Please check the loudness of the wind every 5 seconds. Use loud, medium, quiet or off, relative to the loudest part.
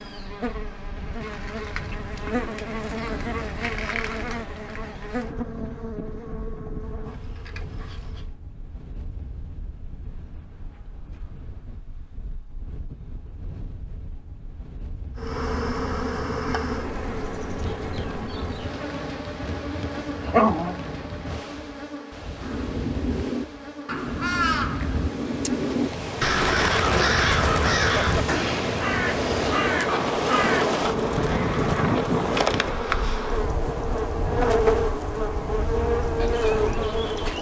quiet, quiet, quiet, medium, medium, loud, loud, medium.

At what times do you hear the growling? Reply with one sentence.
The growling can be heard from 19.9 to 20.8 s.